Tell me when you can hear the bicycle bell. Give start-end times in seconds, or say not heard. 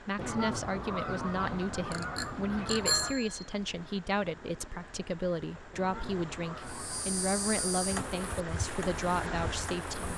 1.9-3.5.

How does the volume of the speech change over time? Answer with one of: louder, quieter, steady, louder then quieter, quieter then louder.
steady.